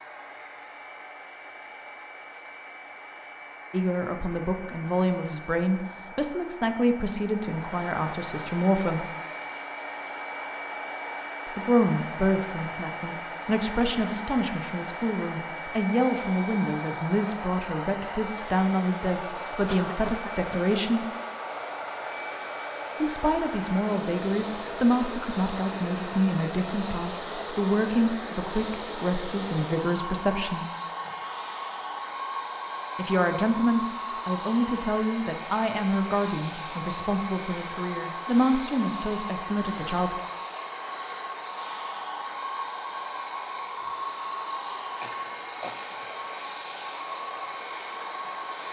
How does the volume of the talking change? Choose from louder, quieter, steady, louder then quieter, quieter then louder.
steady.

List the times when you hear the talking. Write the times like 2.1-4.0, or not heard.
3.7-9.1, 11.4-21.1, 23.0-30.6, 33.0-40.2.